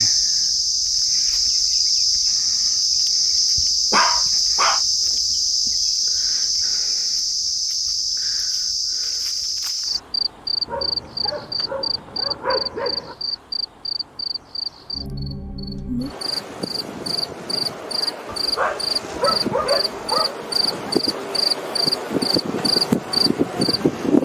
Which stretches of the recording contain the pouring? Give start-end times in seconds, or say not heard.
not heard.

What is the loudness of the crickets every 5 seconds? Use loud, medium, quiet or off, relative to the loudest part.
loud, loud, medium, medium, loud.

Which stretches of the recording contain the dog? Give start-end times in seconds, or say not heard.
3.9-4.8, 10.7-13.2, 18.2-20.3.